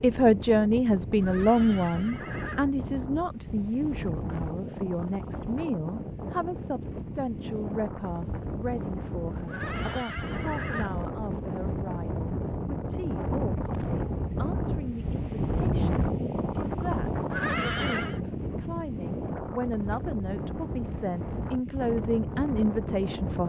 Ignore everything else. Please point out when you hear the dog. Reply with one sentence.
You can't hear the dog here.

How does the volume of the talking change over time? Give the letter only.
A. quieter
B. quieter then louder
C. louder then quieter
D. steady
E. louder
B.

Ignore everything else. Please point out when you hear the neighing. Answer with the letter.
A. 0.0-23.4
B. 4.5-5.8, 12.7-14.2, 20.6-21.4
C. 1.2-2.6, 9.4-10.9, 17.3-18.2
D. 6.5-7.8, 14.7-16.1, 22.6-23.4
C.